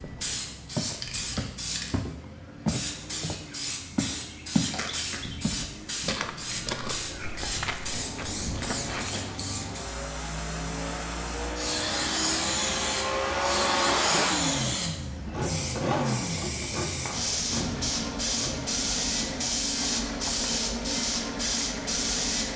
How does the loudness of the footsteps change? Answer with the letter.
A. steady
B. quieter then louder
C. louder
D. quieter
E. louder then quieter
D.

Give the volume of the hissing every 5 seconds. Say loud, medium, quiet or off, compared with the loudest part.
medium, medium, loud, loud, loud.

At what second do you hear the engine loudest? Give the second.
14 s.